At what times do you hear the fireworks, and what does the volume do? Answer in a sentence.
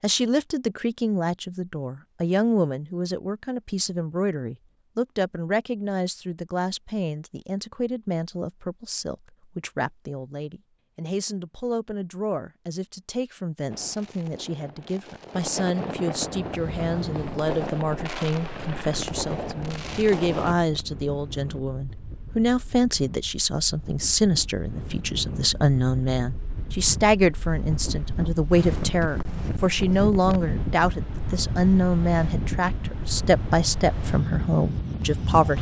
You can hear the fireworks from 13.7 to 20.6 s, getting louder.